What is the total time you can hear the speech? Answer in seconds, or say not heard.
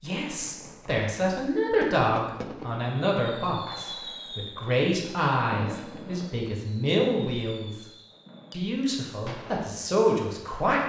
10 s.